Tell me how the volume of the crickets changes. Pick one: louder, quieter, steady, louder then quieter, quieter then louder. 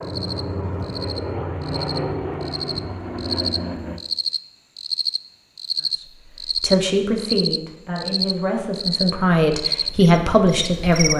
louder.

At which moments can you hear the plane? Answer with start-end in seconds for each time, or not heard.
0.0-4.0.